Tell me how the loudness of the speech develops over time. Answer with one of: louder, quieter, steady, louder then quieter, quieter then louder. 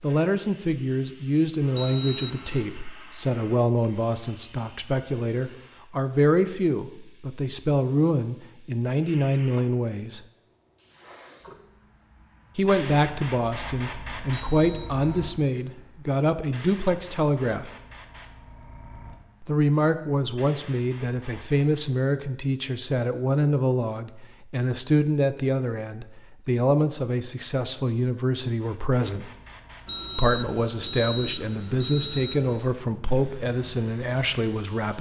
steady.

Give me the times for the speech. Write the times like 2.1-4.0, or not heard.
0.0-10.2, 12.6-17.7, 19.4-29.3, 30.1-34.9.